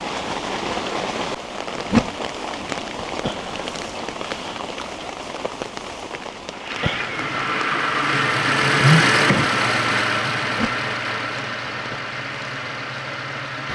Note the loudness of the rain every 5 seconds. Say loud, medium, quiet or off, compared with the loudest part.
loud, loud, medium.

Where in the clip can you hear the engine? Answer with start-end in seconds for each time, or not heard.
6.5-13.7.